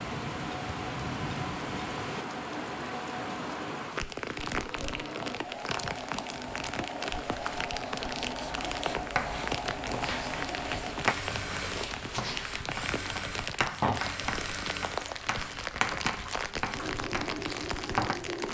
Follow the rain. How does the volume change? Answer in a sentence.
The volume of the rain stays about the same.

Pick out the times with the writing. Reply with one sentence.
You can hear the writing from 7.8 to 18.1 s.